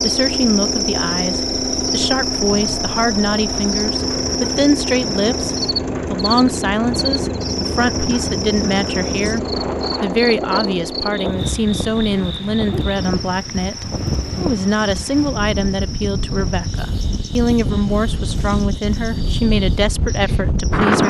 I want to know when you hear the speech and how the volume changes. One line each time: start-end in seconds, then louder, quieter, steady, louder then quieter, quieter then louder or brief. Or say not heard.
0.0-21.0 steady.